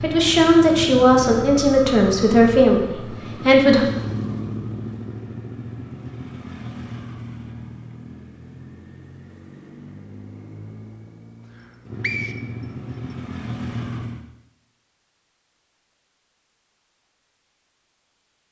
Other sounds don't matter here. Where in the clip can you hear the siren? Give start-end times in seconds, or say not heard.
not heard.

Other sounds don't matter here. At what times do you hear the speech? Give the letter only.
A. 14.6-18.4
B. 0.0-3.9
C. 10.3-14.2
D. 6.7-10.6
B.